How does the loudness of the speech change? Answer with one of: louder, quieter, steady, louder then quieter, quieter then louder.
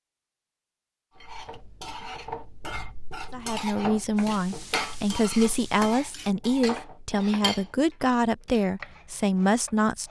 steady.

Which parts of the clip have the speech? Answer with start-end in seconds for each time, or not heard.
3.3-10.0.